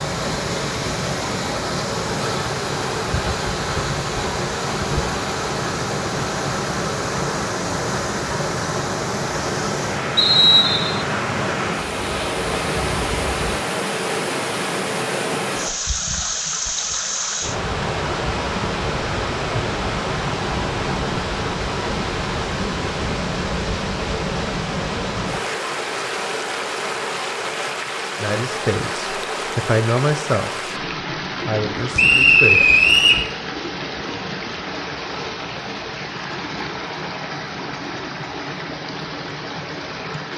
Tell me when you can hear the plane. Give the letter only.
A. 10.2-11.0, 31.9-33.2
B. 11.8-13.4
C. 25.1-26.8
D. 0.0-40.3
B.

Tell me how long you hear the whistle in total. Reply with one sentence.
The whistle can be heard for 2 seconds in total.